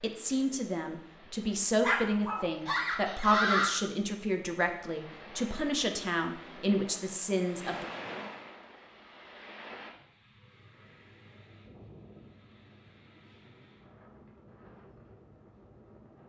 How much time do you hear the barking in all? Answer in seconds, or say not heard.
2 s.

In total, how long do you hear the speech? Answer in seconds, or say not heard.
8 s.